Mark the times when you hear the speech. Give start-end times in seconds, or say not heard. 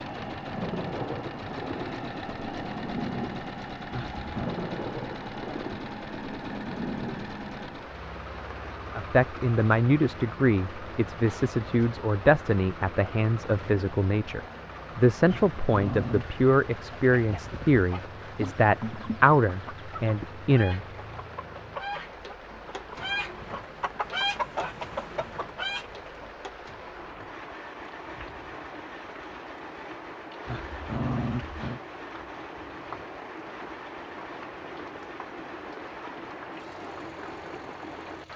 8.9-20.9.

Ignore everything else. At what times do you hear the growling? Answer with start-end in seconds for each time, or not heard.
3.9-4.5, 15.2-16.3, 30.4-31.8.